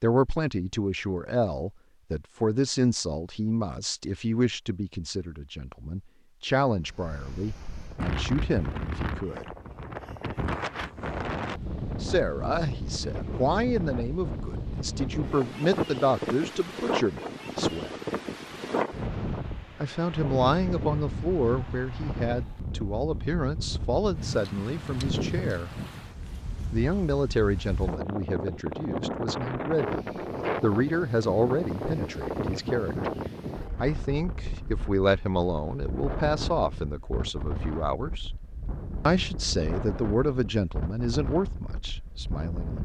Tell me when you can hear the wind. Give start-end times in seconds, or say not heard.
6.8-42.8.